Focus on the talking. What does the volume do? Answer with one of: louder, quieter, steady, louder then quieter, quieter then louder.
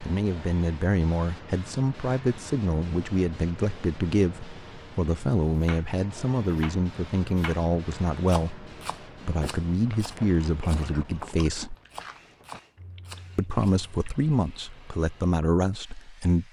steady.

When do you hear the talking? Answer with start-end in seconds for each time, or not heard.
0.0-11.8, 13.3-16.4.